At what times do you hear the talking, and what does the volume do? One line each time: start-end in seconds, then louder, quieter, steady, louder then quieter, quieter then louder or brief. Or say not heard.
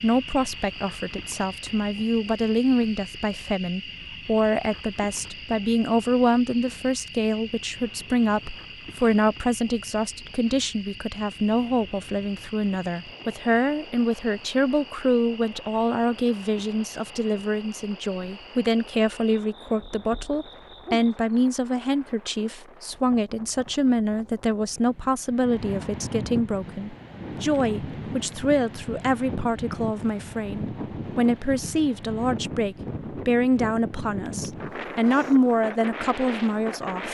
0.0-37.0 steady.